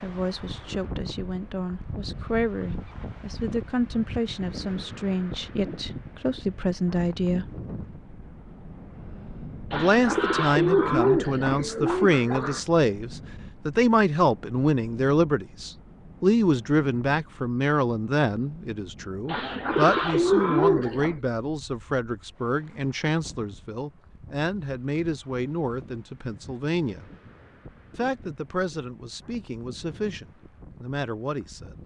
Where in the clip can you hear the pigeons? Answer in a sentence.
You can hear the pigeons from 9.7 to 12.6 s and from 19.2 to 21.2 s.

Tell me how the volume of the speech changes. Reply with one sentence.
The volume of the speech goes up, then down.